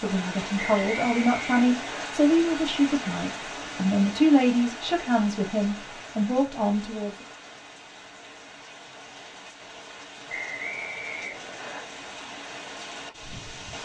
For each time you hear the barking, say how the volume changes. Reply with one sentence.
The barking can't be heard in this clip.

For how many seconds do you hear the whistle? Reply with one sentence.
You can hear the whistle for 3 seconds altogether.